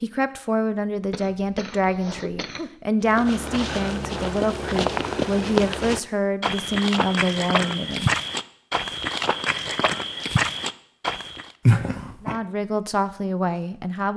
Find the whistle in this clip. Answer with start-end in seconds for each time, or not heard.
not heard.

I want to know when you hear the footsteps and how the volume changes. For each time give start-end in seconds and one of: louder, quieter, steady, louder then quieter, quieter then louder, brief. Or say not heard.
3.0-11.5 steady.